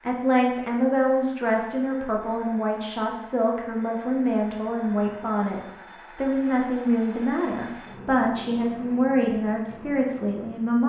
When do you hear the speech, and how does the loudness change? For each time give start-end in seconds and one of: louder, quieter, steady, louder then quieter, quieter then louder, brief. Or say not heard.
0.1-10.8 steady.